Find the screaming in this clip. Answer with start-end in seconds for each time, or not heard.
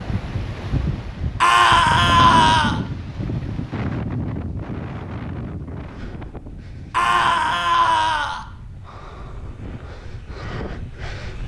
1.4-2.8, 6.9-8.4.